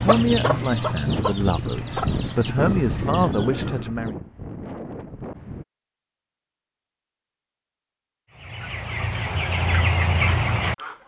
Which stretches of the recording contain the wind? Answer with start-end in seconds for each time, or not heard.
0.1-5.7.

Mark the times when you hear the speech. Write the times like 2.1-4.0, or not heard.
0.0-4.2.